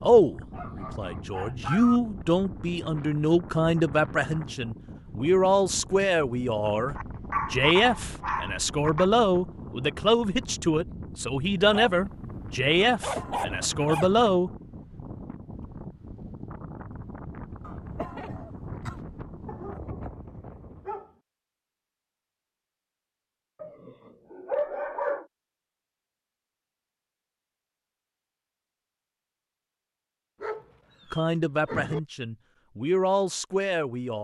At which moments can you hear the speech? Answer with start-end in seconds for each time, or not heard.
0.0-14.5, 31.1-34.1.